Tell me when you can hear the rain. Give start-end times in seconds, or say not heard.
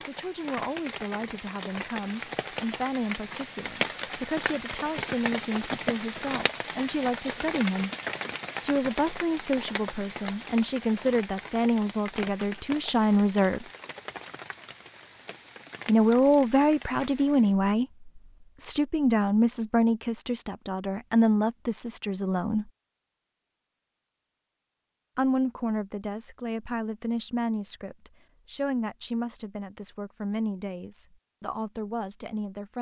0.0-17.6.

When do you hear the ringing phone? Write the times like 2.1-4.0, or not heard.
not heard.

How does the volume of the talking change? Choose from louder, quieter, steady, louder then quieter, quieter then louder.
louder then quieter.